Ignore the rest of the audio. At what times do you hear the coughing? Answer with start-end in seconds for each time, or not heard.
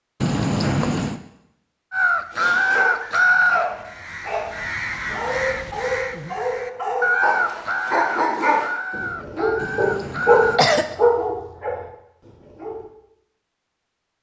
0.2-1.2, 9.6-10.9.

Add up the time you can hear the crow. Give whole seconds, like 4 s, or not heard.
9 s.